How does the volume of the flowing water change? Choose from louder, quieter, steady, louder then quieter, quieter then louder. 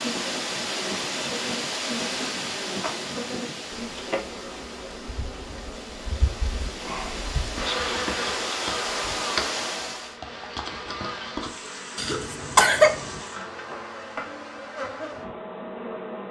quieter then louder.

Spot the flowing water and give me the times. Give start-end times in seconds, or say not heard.
0.0-10.2.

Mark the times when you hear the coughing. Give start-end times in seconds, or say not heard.
11.9-13.2.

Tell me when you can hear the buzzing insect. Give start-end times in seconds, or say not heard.
0.0-16.2.